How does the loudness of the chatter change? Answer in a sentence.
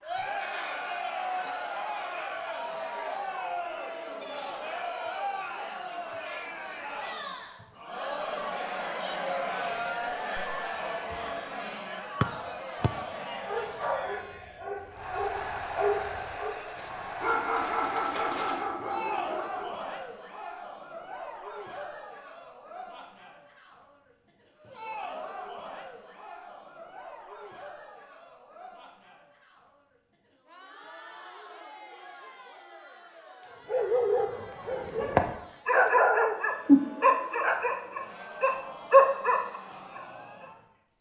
The volume of the chatter goes down.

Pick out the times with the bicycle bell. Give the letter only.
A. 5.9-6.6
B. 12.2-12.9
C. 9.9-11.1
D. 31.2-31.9
C.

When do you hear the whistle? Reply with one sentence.
The whistle can be heard from 12.2 to 12.9 s.